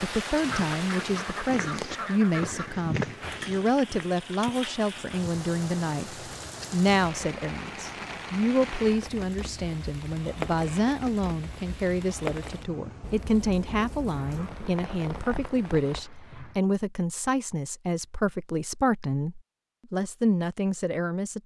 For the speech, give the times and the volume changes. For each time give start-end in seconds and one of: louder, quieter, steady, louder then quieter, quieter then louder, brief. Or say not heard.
0.0-21.4 steady.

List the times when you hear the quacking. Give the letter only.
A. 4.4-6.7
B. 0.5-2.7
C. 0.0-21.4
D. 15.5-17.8
B.